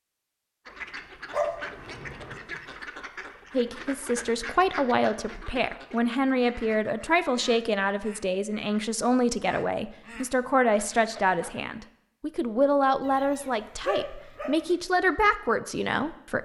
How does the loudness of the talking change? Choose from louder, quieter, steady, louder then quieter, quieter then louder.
steady.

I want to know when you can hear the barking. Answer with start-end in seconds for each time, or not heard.
1.3-2.4, 13.1-14.6.